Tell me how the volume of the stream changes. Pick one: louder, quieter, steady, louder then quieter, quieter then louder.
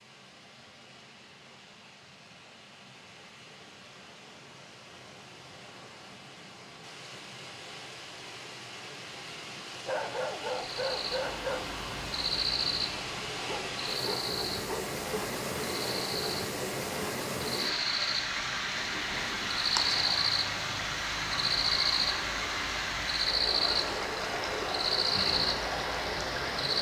louder.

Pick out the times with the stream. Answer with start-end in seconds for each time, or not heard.
0.0-26.7.